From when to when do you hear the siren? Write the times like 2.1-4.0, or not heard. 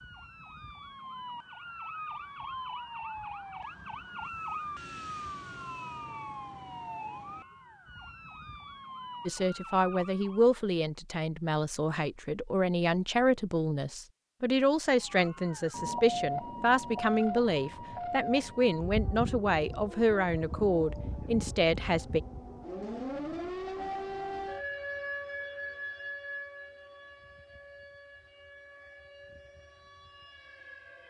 0.0-10.6, 15.0-31.0.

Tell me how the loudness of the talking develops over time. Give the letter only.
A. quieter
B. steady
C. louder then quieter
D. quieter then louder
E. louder
B.